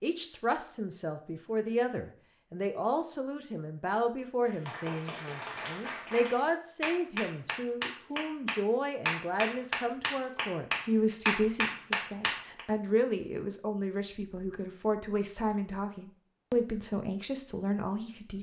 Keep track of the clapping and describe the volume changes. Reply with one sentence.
The loudness of the clapping goes up.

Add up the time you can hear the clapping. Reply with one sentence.
The clapping can be heard for 8 seconds in total.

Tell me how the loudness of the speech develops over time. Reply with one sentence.
The loudness of the speech stays about the same.